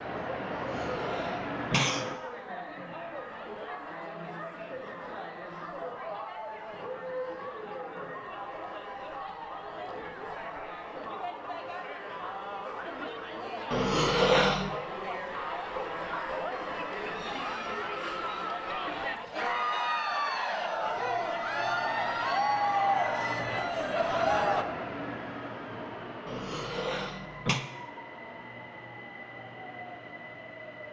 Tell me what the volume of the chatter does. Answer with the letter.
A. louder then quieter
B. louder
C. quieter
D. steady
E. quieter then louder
B.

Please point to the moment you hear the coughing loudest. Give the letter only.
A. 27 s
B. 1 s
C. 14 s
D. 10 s
C.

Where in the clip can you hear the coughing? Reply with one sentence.
You can hear the coughing from 0.5 to 2.0 s, from 13.7 to 14.8 s and from 26.2 to 27.6 s.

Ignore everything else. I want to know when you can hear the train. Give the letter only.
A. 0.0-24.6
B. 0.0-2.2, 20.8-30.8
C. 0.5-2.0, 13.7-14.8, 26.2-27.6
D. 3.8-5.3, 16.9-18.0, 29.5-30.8
B.